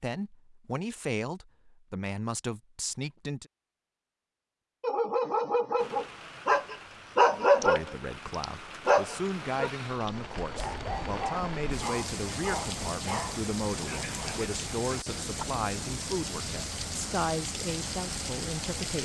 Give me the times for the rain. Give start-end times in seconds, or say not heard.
5.8-19.0.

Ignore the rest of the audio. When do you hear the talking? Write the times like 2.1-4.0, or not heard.
0.0-3.5, 7.6-19.0.